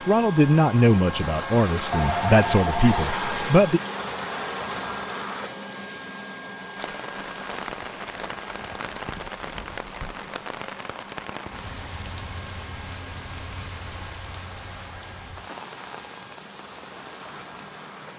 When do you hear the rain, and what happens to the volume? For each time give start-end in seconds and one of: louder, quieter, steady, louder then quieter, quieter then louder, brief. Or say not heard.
6.8-18.1 quieter.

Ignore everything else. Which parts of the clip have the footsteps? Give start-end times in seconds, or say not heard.
not heard.